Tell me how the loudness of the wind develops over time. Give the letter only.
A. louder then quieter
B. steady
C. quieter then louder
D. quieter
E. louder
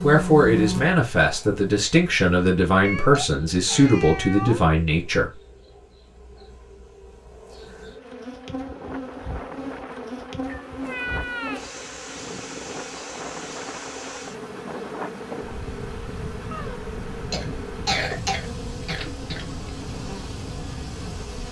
B.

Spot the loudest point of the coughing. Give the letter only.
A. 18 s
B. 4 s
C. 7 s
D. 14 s
A.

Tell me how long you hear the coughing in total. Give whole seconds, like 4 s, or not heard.
3 s.